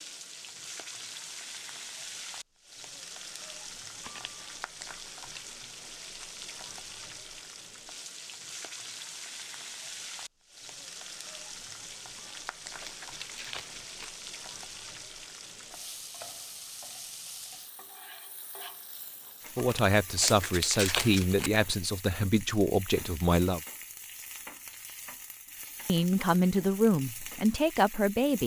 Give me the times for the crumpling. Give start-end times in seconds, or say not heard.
4.0-4.4, 12.2-14.1, 19.6-21.5.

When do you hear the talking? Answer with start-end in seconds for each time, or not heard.
19.6-23.6, 25.9-28.4.